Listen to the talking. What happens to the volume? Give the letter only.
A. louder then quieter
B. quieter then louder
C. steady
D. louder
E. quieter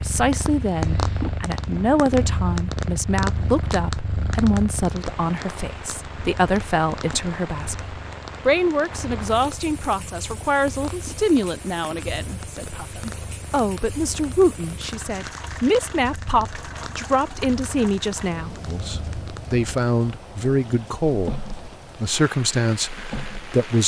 C.